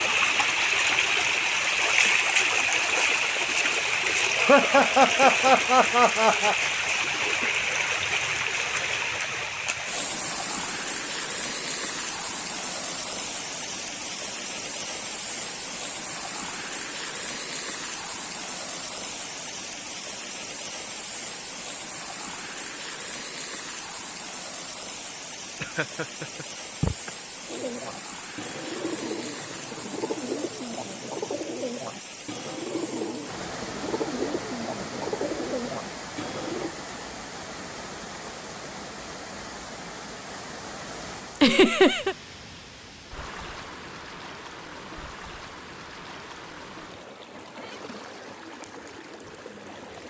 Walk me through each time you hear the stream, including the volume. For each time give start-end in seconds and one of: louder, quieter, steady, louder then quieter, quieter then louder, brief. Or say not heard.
0.0-50.0 quieter.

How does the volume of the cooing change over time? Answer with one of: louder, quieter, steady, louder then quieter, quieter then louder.
steady.